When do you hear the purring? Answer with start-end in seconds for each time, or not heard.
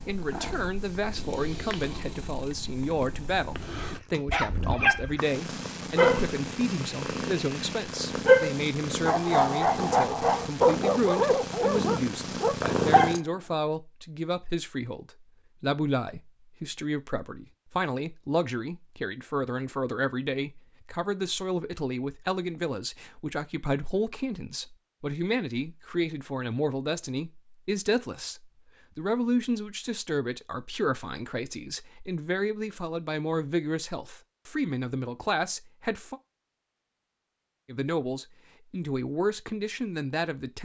0.0-13.2.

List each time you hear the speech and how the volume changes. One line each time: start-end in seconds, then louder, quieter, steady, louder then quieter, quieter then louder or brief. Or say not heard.
0.1-36.2 steady
37.6-40.6 brief.